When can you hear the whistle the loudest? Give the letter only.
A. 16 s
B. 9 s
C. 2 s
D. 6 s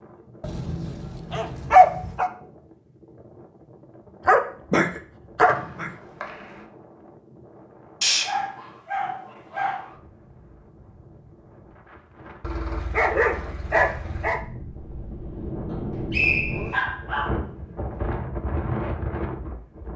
A.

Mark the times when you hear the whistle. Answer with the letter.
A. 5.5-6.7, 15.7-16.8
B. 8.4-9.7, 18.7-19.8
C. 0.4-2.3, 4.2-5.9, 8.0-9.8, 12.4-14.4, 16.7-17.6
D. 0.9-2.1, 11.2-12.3
A.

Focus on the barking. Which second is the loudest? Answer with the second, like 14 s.
2 s.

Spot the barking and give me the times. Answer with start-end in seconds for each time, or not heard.
0.4-2.3, 4.2-5.9, 8.0-9.8, 12.4-14.4, 16.7-17.6.